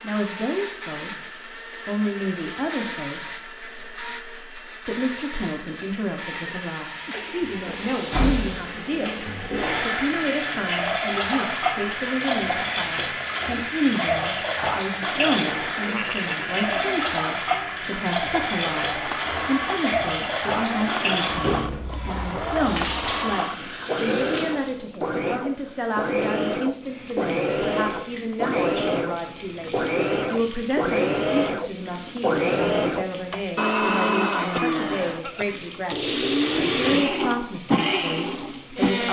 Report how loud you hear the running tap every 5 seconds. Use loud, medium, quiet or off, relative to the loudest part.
off, loud, loud, loud, loud, quiet, quiet, quiet.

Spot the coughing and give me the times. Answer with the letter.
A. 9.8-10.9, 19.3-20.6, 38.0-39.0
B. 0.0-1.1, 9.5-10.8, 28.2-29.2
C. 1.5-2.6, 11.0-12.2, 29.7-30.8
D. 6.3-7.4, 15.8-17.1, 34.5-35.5
D.